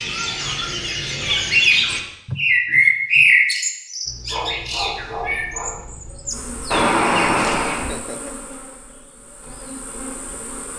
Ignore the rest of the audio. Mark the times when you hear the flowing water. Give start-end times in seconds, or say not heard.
not heard.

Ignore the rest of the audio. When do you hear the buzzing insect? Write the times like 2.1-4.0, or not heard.
6.2-10.7.